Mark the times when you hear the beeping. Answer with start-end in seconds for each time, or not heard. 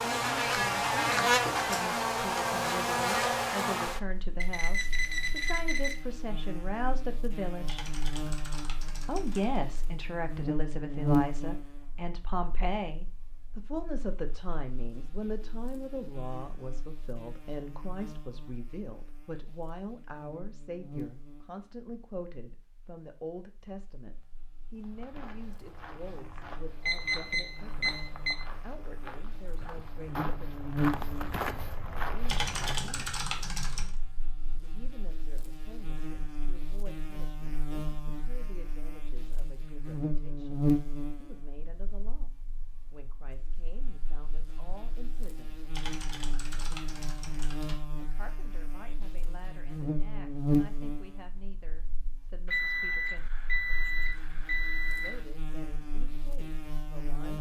4.4-6.0, 26.9-28.4, 52.5-55.2.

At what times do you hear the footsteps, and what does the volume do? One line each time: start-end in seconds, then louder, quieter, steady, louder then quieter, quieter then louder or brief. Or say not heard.
24.8-32.9 louder.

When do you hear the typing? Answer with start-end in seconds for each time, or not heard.
7.7-9.7, 32.2-34.0, 45.7-47.8.